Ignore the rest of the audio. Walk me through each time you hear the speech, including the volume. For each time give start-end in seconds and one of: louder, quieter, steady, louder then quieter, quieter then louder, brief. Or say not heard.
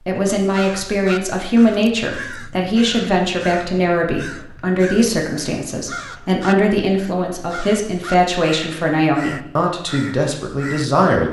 0.1-11.2 steady.